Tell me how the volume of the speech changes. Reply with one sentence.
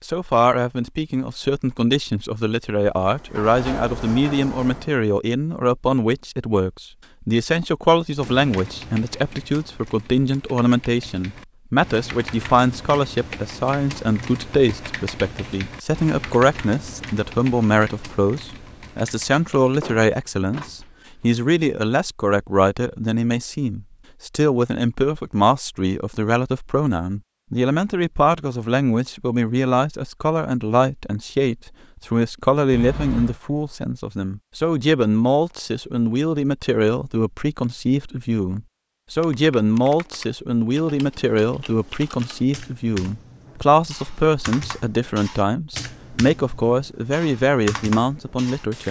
The volume of the speech stays about the same.